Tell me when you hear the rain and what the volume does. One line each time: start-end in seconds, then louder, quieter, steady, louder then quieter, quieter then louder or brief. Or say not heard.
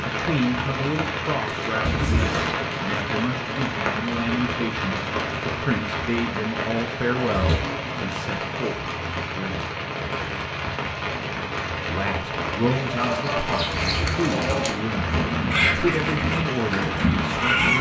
0.0-17.7 steady.